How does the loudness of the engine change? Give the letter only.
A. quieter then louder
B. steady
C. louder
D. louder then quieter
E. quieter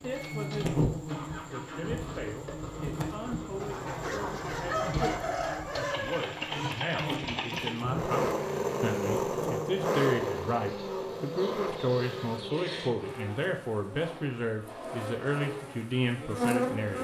D.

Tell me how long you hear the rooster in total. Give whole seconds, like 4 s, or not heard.
3 s.